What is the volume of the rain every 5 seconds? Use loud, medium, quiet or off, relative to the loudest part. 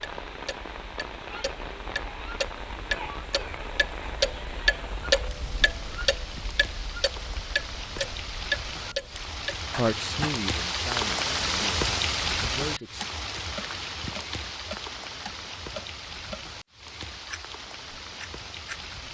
medium, medium, loud, medium.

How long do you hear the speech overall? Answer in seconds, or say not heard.
3 s.